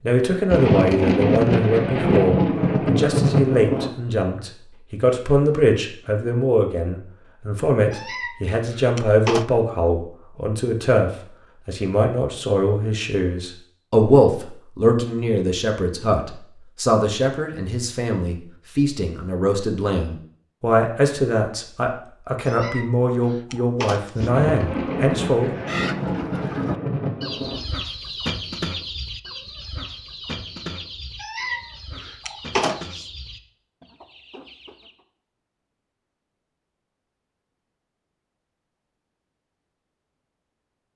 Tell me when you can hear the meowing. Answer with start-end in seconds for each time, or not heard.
7.9-9.4, 22.4-24.3, 31.2-33.0.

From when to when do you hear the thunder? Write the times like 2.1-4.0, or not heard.
0.5-3.9, 24.2-27.6.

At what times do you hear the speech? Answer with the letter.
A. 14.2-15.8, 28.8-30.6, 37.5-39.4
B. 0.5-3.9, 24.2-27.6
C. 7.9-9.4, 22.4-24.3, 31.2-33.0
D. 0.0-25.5
D.